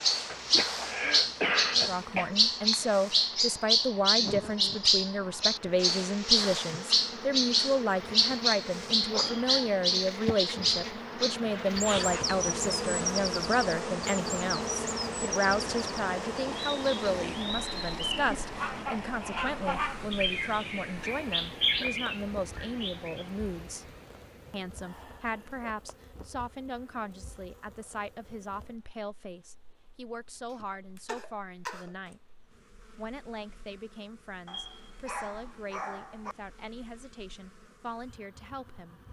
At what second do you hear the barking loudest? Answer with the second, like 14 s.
36 s.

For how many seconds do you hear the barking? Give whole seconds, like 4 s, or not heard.
2 s.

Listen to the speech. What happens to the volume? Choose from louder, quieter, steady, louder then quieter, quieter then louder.
quieter.